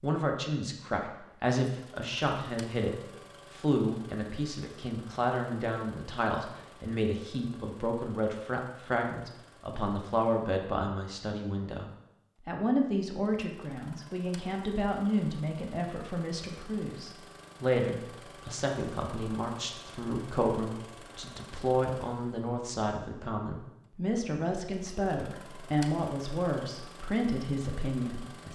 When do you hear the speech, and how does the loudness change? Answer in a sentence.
The speech can be heard from 0.0 to 28.5 s, at a steady volume.